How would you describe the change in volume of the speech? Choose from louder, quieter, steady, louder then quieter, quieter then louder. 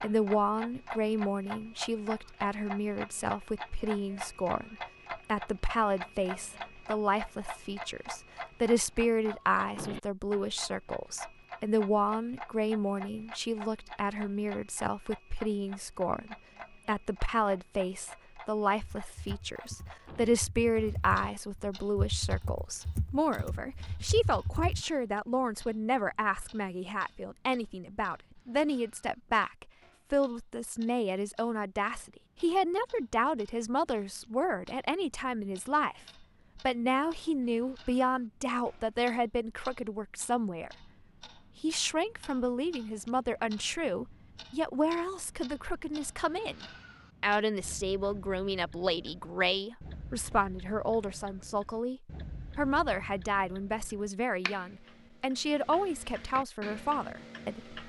steady.